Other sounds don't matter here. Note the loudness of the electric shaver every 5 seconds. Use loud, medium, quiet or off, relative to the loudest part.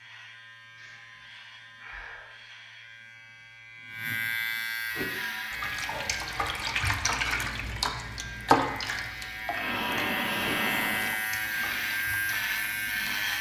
medium, medium, loud.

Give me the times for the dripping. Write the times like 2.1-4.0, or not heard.
4.9-13.3.